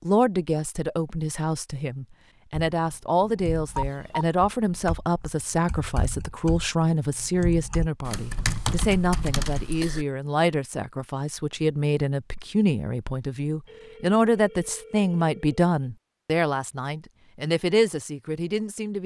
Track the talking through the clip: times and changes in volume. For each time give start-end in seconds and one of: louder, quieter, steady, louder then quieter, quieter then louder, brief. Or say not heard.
0.0-19.0 steady.